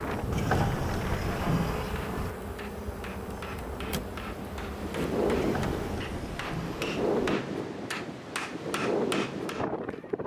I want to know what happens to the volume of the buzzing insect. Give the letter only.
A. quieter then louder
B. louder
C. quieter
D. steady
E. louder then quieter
D.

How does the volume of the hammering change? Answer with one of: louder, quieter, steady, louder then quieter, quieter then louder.
louder.